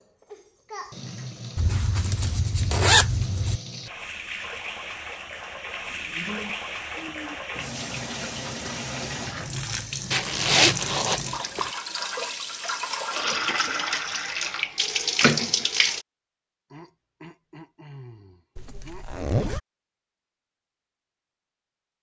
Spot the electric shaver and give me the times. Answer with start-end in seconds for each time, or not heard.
not heard.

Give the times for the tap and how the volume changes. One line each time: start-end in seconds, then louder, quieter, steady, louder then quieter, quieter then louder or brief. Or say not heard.
0.0-16.1 louder.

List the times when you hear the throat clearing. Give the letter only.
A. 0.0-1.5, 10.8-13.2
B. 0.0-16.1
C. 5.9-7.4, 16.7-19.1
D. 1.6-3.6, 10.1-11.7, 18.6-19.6
C.